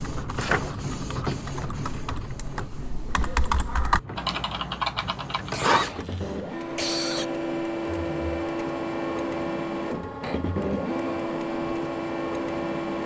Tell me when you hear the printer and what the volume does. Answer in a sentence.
You can hear the printer from 0.0 to 13.0 s, getting quieter then louder.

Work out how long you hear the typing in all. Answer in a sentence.
The typing can be heard for 6 seconds in total.